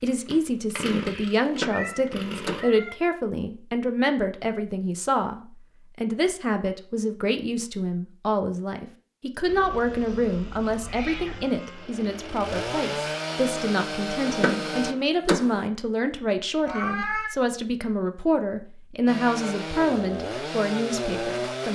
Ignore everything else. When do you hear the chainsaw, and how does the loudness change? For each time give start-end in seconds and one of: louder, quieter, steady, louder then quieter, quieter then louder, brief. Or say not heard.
0.0-2.6 brief
9.4-14.9 louder
19.1-21.7 brief.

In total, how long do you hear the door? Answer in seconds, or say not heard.
3 s.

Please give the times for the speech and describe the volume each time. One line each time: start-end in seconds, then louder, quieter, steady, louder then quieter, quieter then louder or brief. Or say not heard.
0.0-21.7 steady.